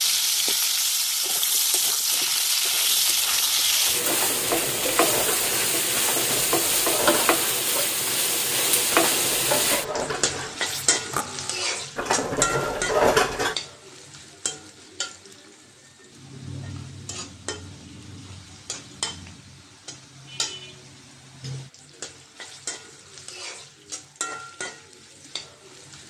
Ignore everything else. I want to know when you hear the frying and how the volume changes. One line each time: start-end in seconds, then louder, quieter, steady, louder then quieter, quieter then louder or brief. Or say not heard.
0.0-26.0 quieter.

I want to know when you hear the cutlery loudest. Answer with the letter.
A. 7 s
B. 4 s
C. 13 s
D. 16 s
C.